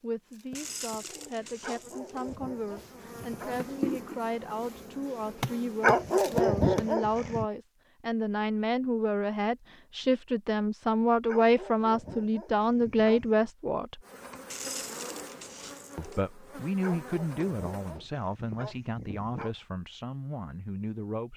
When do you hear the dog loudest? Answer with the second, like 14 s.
6 s.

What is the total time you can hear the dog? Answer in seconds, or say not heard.
9 s.